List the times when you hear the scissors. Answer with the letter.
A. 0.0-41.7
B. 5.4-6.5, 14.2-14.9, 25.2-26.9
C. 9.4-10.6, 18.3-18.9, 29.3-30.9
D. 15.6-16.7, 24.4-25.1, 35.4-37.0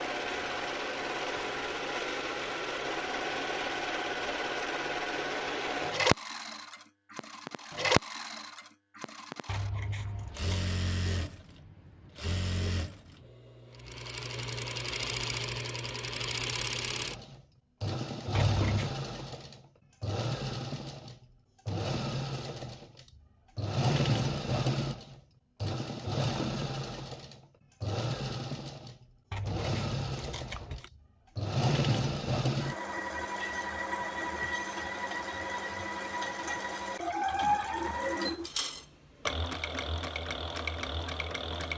C.